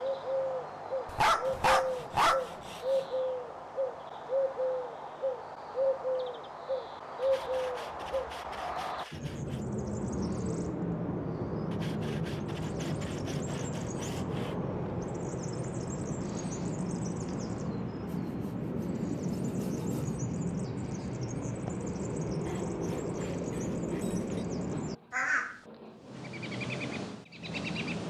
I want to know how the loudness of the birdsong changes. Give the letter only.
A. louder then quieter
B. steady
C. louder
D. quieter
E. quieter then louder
B.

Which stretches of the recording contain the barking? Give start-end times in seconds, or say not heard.
1.1-2.5, 24.7-26.3.